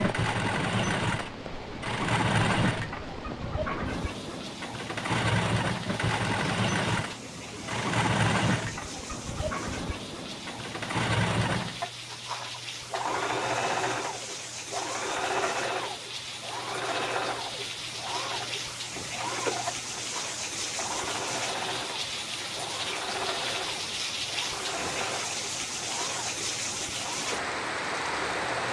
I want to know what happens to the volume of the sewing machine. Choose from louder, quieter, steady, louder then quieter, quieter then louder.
quieter.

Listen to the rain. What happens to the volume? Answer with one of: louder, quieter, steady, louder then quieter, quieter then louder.
louder.